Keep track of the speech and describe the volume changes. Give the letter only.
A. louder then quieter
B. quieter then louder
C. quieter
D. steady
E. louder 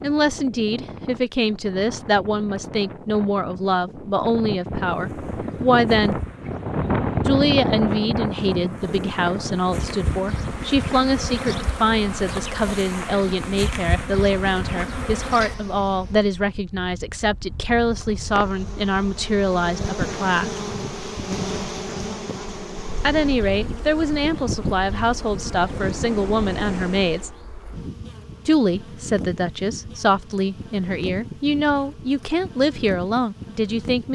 D.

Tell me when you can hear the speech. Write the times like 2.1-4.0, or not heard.
0.0-6.2, 7.2-20.5, 23.0-27.3, 28.4-34.1.